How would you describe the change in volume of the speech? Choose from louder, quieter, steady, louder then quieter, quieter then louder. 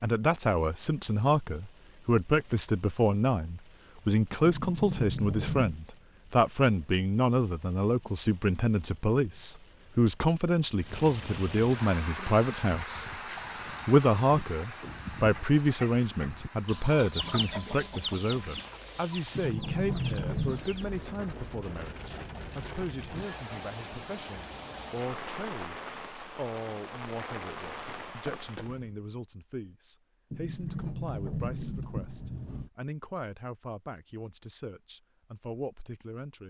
quieter.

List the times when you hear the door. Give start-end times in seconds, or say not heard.
4.5-5.8, 19.4-20.6, 30.3-32.7.